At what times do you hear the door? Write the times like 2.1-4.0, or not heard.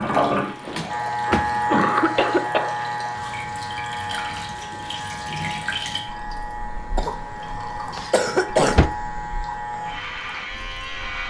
0.7-1.7, 7.9-8.9.